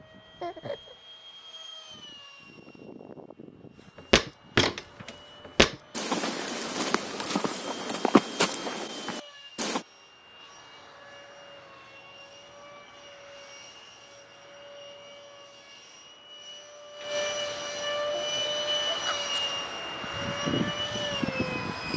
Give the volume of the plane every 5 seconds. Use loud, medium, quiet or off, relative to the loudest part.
quiet, quiet, quiet, loud, loud.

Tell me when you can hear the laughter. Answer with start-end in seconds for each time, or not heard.
0.4-0.9, 18.1-19.4.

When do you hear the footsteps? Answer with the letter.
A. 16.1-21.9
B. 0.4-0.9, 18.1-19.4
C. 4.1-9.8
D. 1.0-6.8
C.